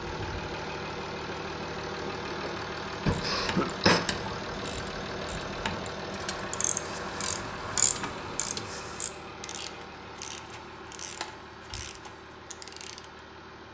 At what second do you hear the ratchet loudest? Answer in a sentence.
The loudest moment of the ratchet is at 8 seconds.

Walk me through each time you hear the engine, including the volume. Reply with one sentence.
The engine can be heard from 0.0 to 13.6 s, getting quieter.